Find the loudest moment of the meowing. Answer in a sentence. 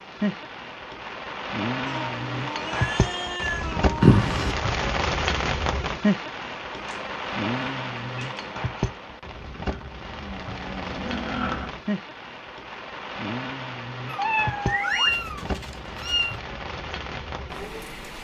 The loudest moment of the meowing is at 15 seconds.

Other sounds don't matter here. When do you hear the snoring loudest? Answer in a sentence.
The loudest moment of the snoring is at 4 seconds.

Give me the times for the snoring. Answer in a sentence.
You can hear the snoring from 4.0 to 4.5 s and from 9.7 to 11.7 s.